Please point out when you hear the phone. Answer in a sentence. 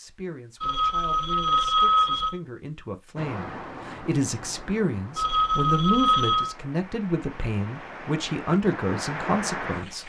You can hear the phone from 0.6 to 2.4 s and from 5.2 to 6.5 s.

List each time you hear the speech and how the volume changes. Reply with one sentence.
You can hear the speech from 0.0 to 10.0 s, getting louder.